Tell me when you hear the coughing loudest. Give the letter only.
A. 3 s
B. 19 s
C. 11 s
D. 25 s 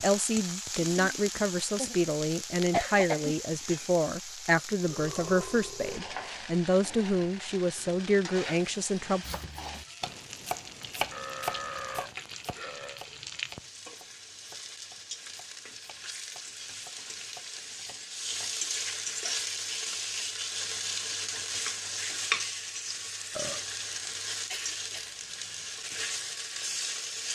A.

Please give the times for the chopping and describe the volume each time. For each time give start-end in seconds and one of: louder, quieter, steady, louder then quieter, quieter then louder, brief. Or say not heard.
9.2-18.3 quieter then louder.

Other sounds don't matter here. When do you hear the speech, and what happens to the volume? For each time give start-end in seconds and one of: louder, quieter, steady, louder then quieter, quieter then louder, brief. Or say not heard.
0.0-9.2 steady.